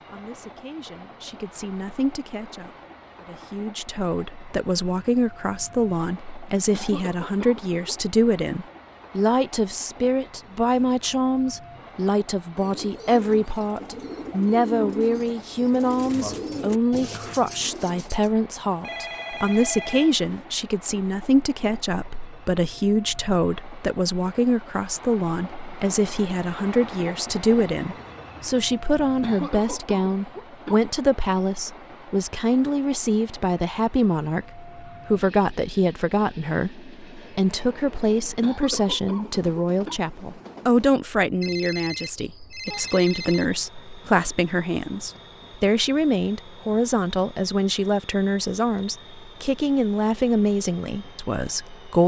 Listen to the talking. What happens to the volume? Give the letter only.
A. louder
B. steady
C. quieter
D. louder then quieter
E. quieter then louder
B.